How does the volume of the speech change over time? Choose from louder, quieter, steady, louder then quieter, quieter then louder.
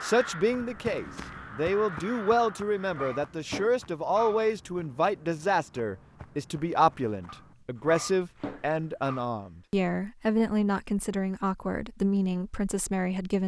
steady.